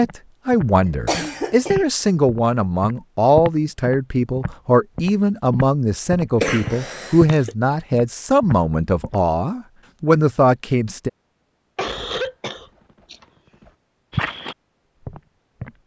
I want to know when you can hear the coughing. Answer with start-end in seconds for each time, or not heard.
1.1-1.8, 6.3-7.5, 11.8-13.7.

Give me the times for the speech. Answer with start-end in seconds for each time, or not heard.
0.0-11.1.